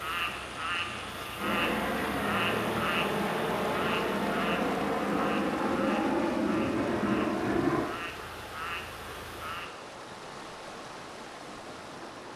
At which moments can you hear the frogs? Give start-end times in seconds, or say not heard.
0.0-9.7.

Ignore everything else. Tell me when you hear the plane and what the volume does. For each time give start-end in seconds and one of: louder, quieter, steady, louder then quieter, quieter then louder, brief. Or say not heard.
0.0-7.9 louder.